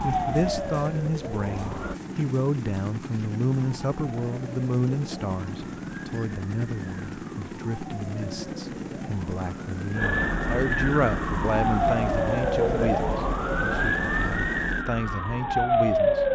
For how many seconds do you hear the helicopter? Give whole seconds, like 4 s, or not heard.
15 s.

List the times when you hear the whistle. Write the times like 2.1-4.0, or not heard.
not heard.